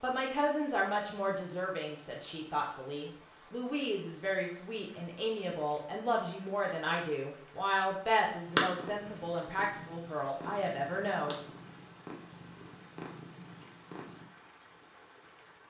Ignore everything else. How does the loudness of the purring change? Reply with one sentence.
The loudness of the purring stays about the same.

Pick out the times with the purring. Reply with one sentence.
You can hear the purring from 8.4 to 14.2 s.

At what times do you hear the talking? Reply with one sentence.
You can hear the talking from 0.0 to 11.4 s.